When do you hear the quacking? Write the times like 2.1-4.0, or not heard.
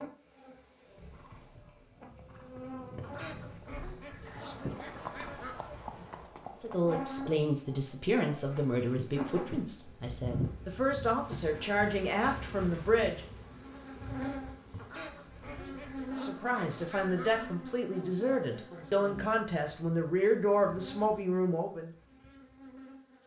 3.0-5.7, 14.7-17.6.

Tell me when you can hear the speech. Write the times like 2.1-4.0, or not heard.
6.5-13.2, 16.2-21.9.